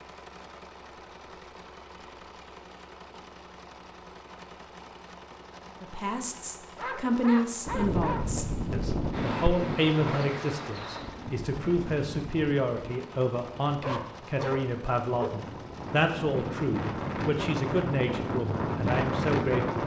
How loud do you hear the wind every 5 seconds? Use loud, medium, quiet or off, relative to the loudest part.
off, loud, medium, loud.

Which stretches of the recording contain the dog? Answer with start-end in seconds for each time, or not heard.
6.8-8.3, 13.8-15.4.